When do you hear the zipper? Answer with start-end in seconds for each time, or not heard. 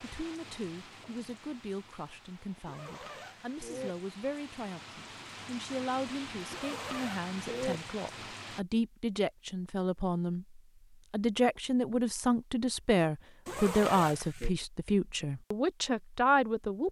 2.6-4.0, 6.5-7.8, 13.4-14.5.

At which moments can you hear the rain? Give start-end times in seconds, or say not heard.
0.0-8.7.